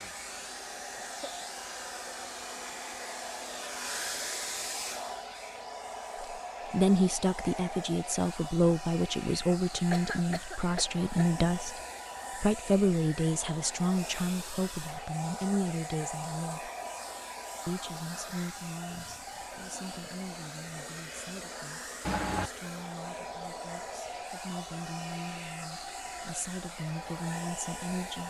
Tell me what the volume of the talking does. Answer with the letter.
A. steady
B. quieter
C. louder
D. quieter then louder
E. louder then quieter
D.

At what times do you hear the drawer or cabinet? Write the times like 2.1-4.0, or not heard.
not heard.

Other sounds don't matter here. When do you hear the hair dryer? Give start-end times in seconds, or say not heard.
0.0-28.2.